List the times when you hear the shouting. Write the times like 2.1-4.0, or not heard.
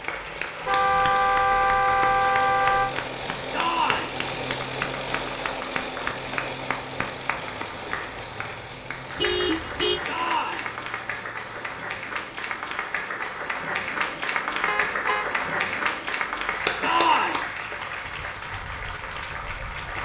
3.5-4.2, 10.1-10.7, 16.8-17.4.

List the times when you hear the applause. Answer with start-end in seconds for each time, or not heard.
0.0-20.0.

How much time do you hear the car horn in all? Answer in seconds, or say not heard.
4 s.